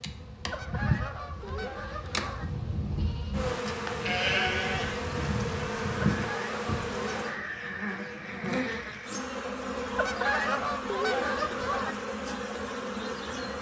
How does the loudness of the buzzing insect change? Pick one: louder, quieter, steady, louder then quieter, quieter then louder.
steady.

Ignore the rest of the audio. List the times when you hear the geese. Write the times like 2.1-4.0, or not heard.
0.5-2.5, 6.2-7.5, 9.9-11.9.